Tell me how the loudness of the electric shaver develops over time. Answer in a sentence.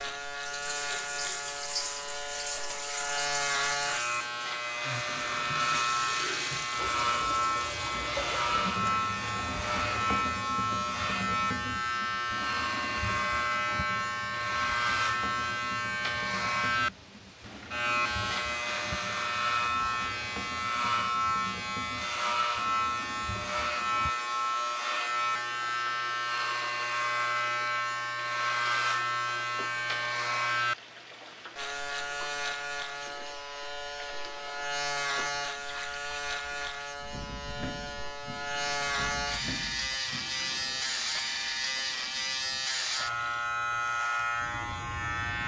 The loudness of the electric shaver stays about the same.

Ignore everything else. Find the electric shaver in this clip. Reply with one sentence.
You can hear the electric shaver from 0.0 to 45.4 s.